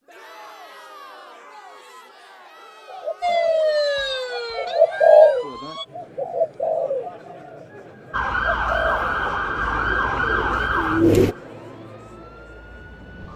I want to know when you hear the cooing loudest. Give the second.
5 s.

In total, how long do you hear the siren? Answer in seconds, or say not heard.
8 s.